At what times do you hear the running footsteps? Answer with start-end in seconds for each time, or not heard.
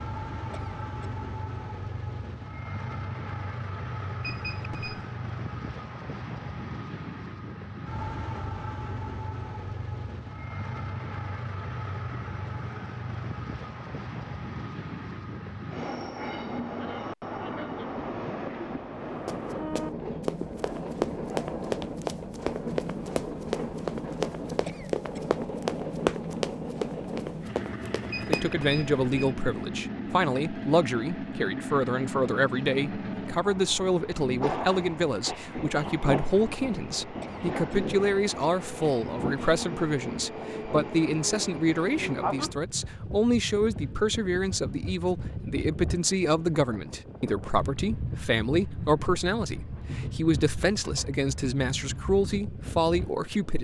19.2-28.4.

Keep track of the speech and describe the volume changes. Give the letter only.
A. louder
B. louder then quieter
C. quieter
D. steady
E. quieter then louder
D.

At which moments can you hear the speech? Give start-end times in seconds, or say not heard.
28.2-53.5.